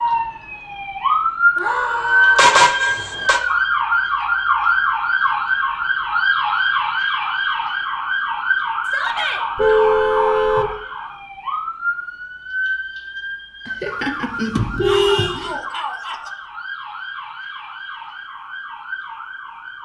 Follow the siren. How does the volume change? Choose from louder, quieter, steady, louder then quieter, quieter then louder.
quieter.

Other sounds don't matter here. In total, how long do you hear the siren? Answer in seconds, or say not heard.
20 s.